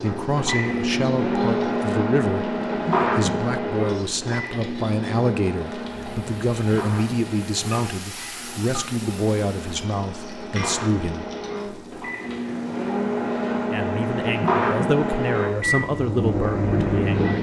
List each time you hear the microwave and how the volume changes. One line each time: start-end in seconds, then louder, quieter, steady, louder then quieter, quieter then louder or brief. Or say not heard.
0.0-17.3 quieter then louder.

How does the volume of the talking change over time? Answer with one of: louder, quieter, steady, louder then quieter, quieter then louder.
steady.